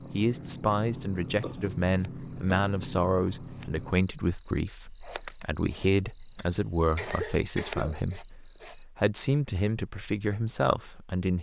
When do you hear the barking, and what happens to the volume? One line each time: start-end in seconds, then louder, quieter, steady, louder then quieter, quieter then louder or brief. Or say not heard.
not heard.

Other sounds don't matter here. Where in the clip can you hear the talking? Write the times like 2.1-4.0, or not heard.
0.1-11.3.